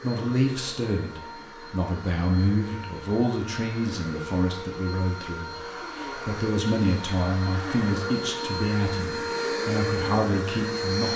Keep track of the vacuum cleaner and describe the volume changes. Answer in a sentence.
The loudness of the vacuum cleaner goes up.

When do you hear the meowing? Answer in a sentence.
The meowing can't be heard in this clip.